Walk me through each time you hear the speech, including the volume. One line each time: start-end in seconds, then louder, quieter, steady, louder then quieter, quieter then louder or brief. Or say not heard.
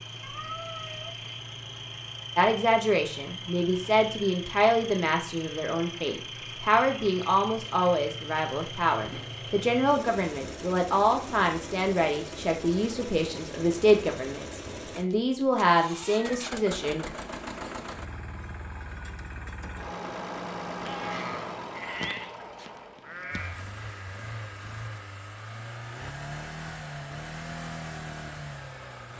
2.4-17.1 steady.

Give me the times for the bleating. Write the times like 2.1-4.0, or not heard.
20.9-23.6.